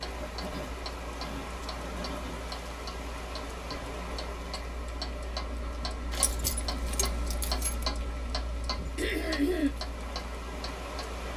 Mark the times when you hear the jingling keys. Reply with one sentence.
The jingling keys can be heard from 6.1 to 7.8 s.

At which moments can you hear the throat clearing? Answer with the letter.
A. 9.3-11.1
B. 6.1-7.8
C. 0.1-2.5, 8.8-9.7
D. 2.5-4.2
C.